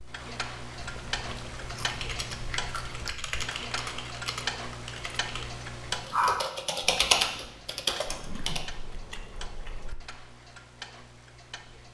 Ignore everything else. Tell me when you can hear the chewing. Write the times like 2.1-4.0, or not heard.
0.8-3.5, 8.1-9.9.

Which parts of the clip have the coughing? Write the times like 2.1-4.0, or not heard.
not heard.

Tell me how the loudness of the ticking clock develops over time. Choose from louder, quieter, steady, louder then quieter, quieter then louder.
quieter.